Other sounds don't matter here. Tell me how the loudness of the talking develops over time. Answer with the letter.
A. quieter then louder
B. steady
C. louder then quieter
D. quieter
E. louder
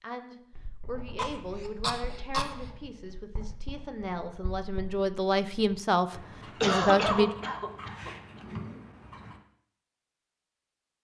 E.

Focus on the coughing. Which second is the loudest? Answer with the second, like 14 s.
7 s.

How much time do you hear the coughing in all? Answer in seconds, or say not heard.
3 s.